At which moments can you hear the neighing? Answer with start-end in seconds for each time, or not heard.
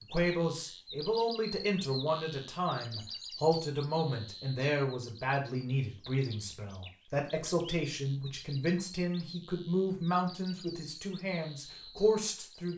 not heard.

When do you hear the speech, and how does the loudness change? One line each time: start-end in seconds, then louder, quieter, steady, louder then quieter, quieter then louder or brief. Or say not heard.
0.0-12.7 steady.